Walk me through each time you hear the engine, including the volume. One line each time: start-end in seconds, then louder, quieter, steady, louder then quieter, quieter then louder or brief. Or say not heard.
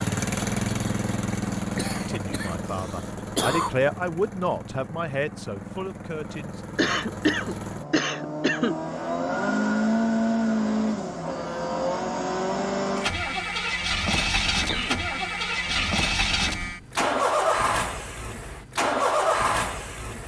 0.0-20.2 quieter then louder.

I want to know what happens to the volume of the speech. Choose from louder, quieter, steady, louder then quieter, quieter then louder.
louder then quieter.